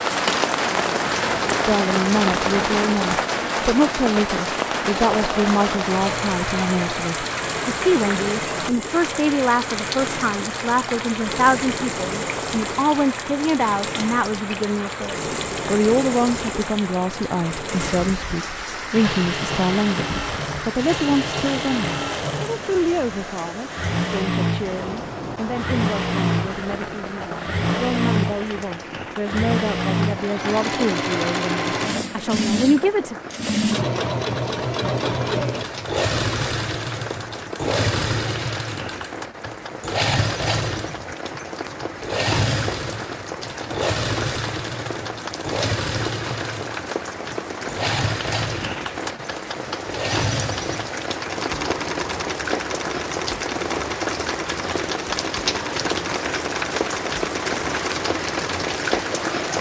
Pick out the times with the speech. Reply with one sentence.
The speech can be heard from 1.6 to 33.1 s.